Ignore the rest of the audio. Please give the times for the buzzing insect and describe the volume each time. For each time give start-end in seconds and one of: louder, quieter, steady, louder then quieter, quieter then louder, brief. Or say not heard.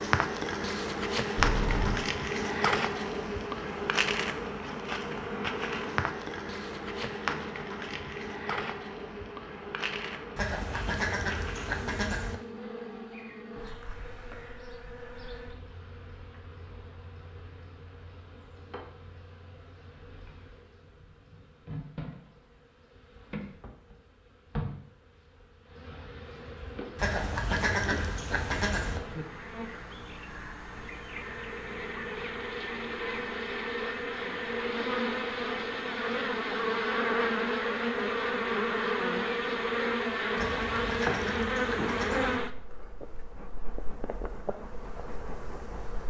0.0-46.0 quieter then louder.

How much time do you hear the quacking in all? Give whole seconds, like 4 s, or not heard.
6 s.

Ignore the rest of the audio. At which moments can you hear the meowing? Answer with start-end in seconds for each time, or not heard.
1.4-2.0.